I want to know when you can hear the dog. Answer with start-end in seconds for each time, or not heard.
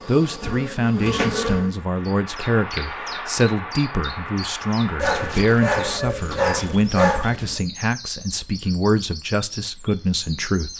5.0-7.6.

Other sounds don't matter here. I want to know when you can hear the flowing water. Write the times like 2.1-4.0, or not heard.
not heard.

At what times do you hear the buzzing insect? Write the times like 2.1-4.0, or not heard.
0.0-1.7.